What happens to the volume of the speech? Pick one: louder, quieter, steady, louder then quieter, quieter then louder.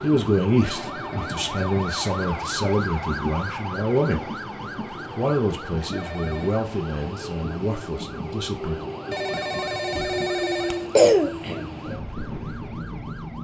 quieter.